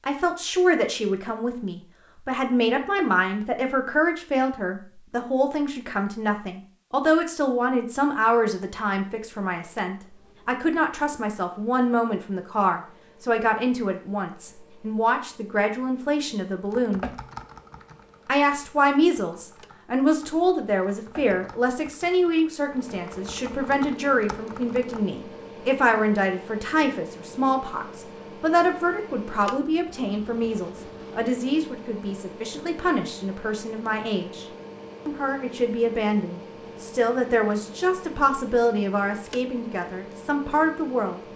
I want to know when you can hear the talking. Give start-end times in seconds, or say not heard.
0.1-17.1, 18.2-34.5, 35.0-41.2.